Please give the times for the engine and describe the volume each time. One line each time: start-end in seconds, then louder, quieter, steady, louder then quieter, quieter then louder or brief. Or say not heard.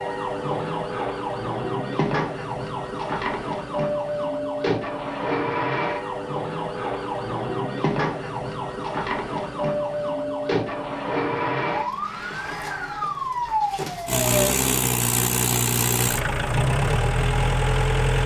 14.1-18.2 steady.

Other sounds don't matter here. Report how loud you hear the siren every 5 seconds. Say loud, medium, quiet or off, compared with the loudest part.
loud, loud, loud, off.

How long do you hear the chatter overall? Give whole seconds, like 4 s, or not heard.
not heard.